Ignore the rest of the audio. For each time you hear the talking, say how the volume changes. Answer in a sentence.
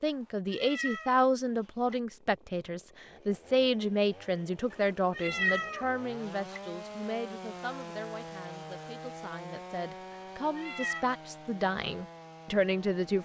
The talking can be heard from 0.0 to 13.1 s, getting quieter then louder.